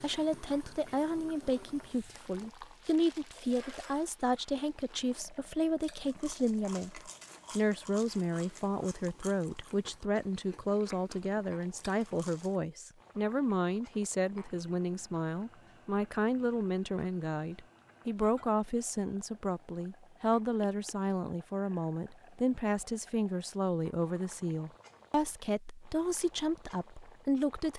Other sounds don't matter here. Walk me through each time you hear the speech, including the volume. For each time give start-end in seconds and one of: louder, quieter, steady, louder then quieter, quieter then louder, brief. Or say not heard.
0.0-27.7 steady.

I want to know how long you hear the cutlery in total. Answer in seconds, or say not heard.
not heard.